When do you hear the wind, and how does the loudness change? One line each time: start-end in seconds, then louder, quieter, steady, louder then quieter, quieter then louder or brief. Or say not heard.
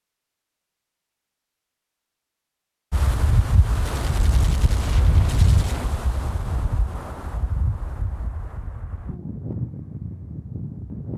2.9-11.1 quieter then louder.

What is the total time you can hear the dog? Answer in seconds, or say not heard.
not heard.